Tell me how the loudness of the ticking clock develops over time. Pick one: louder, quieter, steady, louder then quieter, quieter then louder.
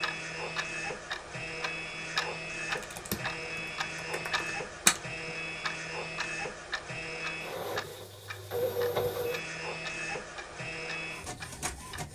quieter.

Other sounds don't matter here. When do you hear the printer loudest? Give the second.
9 s.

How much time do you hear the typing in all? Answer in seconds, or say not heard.
3 s.